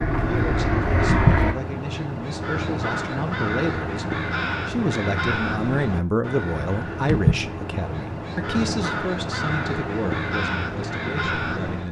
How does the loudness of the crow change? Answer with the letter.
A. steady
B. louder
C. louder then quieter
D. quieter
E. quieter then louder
A.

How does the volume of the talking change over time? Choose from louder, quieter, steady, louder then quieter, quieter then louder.
louder then quieter.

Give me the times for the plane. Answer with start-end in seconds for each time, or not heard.
0.0-1.6.